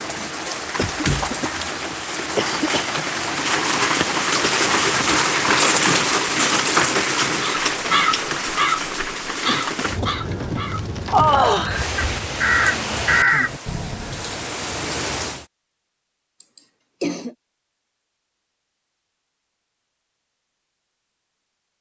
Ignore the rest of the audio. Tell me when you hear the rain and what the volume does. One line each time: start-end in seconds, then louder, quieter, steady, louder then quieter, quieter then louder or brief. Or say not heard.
0.0-15.4 louder then quieter.